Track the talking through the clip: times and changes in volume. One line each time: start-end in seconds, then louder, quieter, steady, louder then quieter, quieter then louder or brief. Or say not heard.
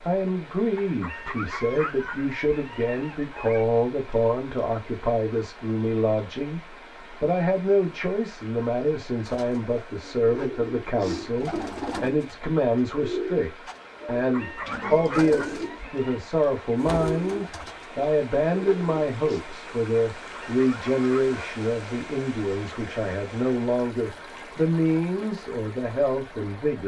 0.0-26.8 steady.